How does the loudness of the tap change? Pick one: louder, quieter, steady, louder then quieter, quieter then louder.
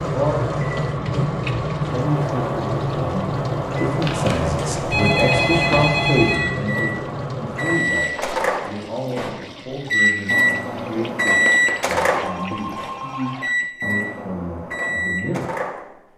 quieter.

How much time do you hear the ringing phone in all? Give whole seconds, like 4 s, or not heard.
4 s.